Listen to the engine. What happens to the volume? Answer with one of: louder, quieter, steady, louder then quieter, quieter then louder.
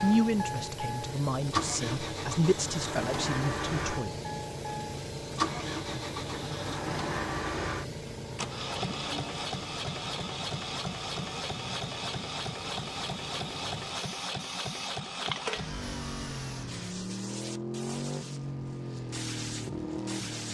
steady.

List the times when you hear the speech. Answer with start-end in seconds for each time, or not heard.
0.0-4.2.